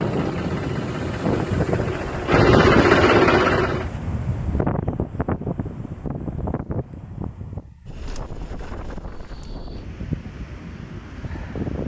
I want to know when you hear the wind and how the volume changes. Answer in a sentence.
You can hear the wind from 0.0 to 11.8 s, getting quieter.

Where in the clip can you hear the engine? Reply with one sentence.
You can hear the engine from 0.0 to 3.9 s.